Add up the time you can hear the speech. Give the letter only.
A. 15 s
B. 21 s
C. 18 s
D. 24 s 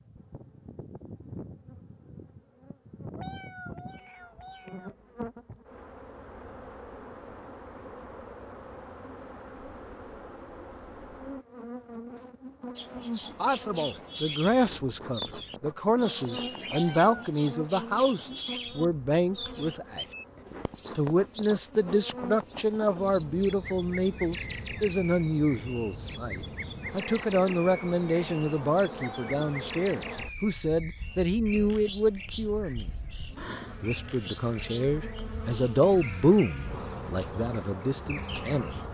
D.